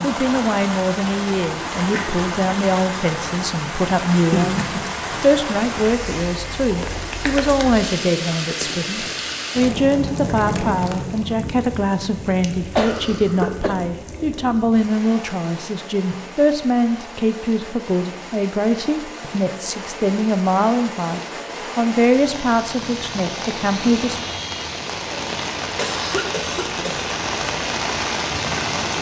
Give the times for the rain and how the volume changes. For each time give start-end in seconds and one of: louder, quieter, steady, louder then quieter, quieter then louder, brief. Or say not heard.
0.0-28.9 quieter then louder.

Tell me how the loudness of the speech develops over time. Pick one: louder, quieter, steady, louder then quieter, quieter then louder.
steady.